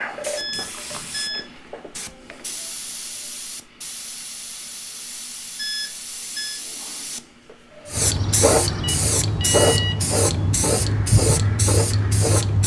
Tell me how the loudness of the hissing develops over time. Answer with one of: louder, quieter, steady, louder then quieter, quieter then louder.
louder.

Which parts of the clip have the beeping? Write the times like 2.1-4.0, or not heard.
0.3-1.5, 5.5-6.7, 8.8-10.0.